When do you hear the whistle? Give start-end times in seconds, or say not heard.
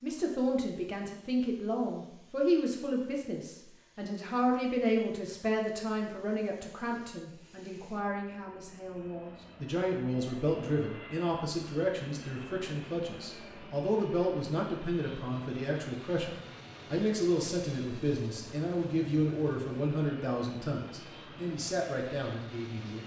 not heard.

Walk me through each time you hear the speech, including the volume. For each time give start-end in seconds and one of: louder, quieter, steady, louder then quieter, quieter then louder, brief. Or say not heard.
0.0-23.0 steady.